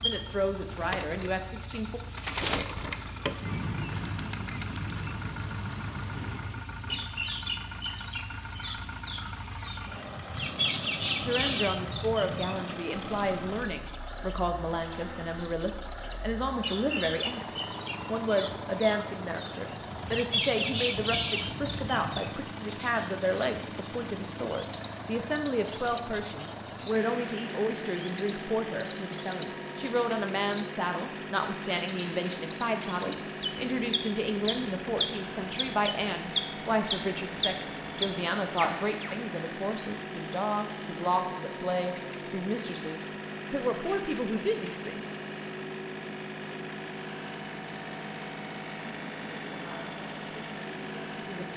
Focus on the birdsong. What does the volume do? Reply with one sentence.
The volume of the birdsong stays about the same.